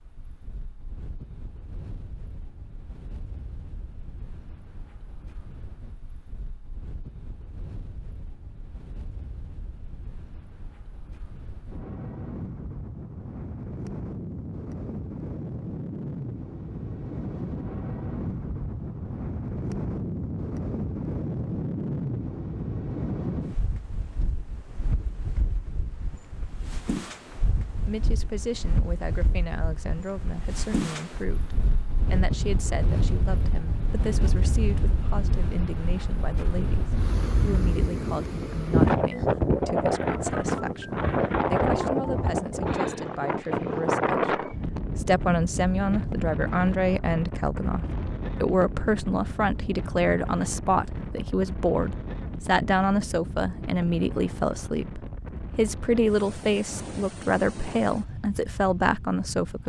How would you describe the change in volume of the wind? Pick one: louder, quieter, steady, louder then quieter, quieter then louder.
louder then quieter.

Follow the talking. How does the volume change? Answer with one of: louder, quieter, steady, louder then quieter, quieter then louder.
louder.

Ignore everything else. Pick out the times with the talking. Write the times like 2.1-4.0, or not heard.
27.9-59.6.